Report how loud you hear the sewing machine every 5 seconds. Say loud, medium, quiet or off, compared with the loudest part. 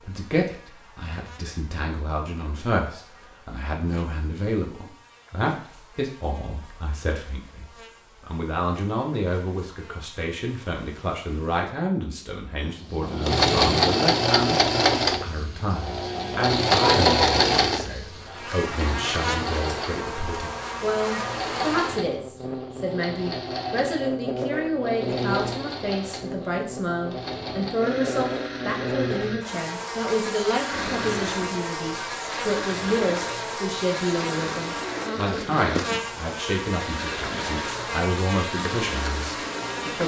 off, off, loud, loud, quiet, quiet, quiet, quiet.